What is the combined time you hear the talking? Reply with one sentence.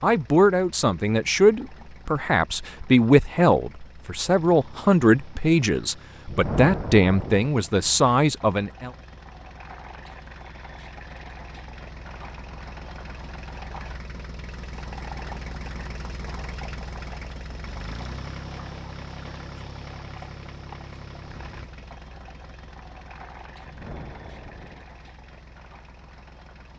The talking can be heard for 9 seconds in total.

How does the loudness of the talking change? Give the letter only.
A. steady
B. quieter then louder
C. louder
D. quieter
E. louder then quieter
A.